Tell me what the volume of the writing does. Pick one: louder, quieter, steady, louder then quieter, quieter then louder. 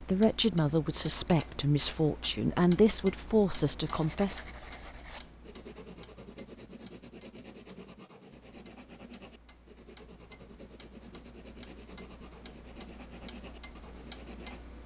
steady.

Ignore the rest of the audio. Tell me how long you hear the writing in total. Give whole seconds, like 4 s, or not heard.
11 s.